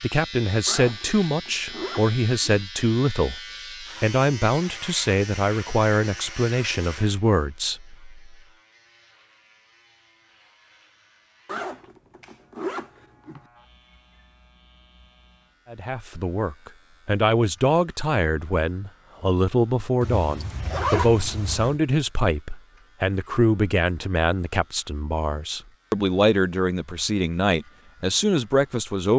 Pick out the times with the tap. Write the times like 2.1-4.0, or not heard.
not heard.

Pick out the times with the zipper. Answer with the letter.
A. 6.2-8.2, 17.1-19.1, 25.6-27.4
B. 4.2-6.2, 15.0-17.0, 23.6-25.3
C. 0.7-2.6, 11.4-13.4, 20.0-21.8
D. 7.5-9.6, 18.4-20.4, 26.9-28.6
C.